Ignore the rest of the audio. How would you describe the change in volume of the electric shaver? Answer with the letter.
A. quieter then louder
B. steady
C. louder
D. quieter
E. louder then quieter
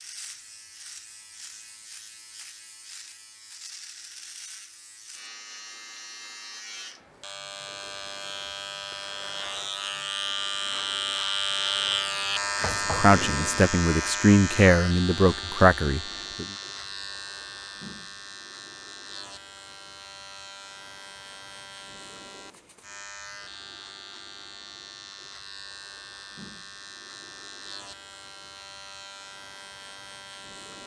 E.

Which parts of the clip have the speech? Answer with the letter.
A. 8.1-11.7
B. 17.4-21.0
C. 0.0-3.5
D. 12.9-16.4
D.